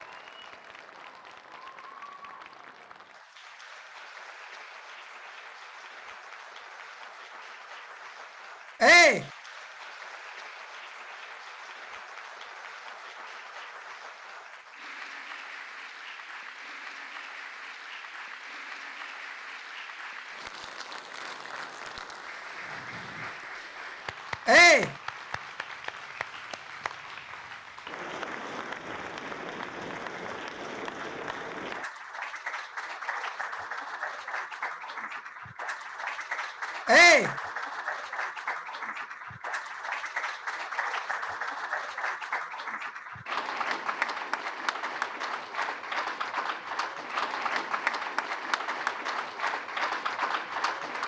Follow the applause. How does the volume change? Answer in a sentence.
The loudness of the applause goes up.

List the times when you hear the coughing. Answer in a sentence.
You can't hear the coughing here.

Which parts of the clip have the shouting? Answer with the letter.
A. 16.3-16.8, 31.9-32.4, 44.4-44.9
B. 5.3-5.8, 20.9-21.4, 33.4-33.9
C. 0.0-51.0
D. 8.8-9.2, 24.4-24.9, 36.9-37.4
D.